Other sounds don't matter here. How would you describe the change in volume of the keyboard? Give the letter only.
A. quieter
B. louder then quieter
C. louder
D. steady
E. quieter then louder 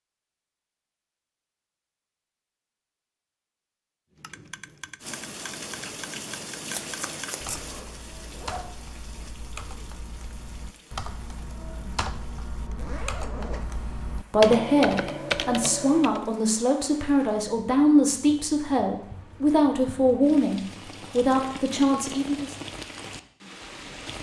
C.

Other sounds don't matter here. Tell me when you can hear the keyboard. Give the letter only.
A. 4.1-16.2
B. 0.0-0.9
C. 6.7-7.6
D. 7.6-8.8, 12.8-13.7
A.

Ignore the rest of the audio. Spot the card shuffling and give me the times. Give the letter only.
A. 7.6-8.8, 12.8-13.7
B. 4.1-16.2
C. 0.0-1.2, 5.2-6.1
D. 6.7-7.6
D.